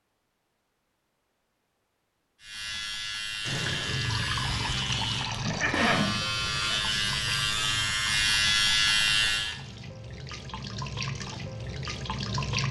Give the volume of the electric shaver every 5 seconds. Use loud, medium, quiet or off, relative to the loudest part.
medium, loud, off.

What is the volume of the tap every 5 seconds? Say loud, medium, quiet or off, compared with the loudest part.
loud, medium, loud.